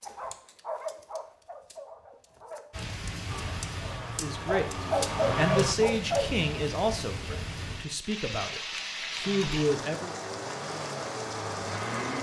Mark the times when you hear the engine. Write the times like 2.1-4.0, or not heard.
3.2-5.8, 9.2-12.1.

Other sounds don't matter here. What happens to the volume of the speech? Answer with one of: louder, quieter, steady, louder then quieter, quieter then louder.
quieter then louder.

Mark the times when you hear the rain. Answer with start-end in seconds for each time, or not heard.
2.7-12.1.